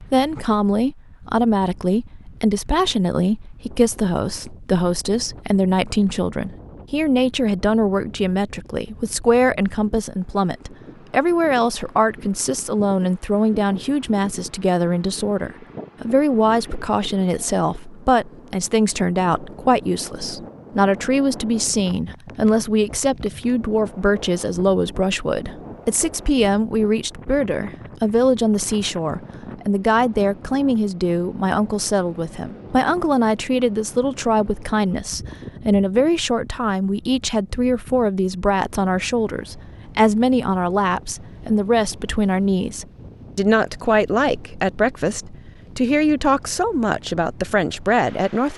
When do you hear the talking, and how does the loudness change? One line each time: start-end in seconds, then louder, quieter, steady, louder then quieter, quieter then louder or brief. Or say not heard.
0.1-48.5 steady.